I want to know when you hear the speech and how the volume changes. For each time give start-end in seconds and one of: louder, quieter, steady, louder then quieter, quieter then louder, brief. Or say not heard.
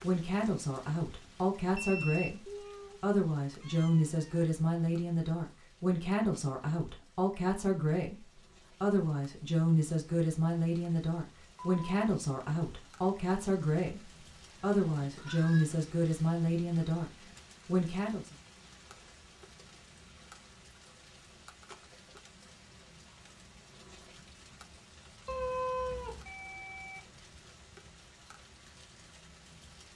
0.0-18.4 steady.